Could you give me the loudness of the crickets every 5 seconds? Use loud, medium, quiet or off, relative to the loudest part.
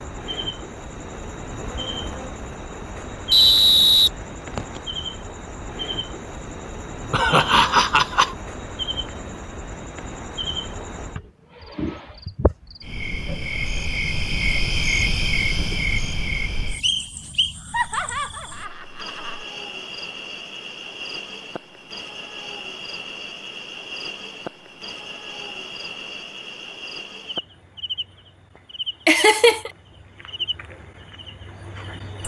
medium, medium, loud, loud, medium, medium, medium.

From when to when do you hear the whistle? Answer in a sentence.
You can hear the whistle from 3.3 to 4.8 s and from 16.8 to 17.6 s.